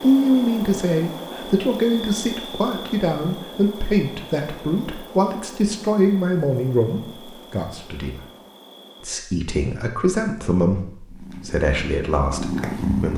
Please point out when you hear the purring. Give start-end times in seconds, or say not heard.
11.1-13.1.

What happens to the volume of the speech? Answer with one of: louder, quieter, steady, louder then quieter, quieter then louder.
quieter.